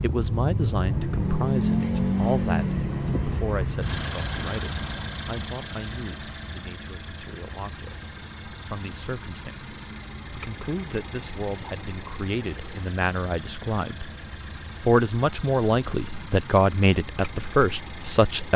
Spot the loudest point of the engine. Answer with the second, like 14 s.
2 s.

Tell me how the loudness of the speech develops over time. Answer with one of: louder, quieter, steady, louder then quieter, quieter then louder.
quieter then louder.